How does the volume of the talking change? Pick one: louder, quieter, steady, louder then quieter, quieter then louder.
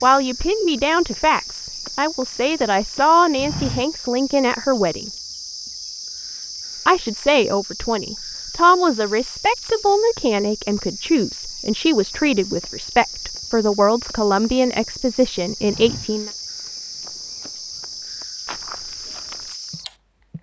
steady.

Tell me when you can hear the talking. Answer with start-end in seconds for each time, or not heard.
0.0-5.1, 6.8-16.3.